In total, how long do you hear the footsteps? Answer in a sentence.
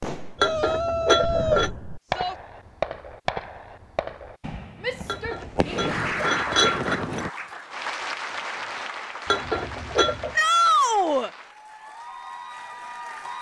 You can't hear the footsteps here.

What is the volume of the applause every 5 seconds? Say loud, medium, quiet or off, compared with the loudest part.
off, loud, medium.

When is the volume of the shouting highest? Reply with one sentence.
The loudest moment of the shouting is at 11 seconds.